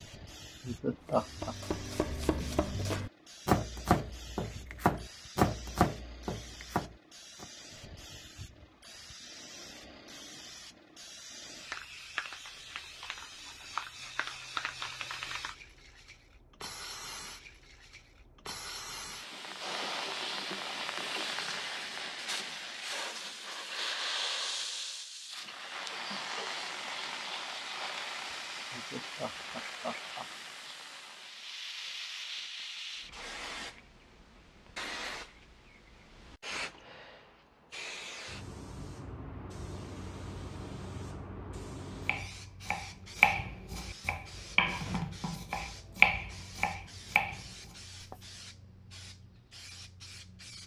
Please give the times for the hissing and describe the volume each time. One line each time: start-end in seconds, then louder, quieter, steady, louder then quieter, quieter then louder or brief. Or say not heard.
0.0-50.6 louder then quieter.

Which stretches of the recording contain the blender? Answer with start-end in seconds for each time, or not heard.
not heard.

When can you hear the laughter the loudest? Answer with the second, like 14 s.
1 s.